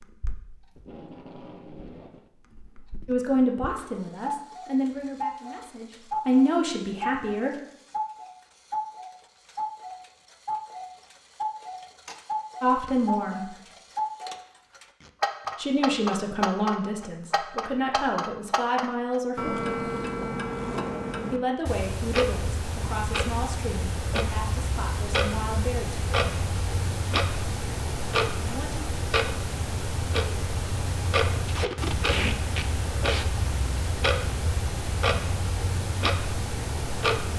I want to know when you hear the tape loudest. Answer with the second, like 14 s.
32 s.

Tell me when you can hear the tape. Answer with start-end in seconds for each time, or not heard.
0.8-2.3, 15.0-16.1, 31.4-33.2.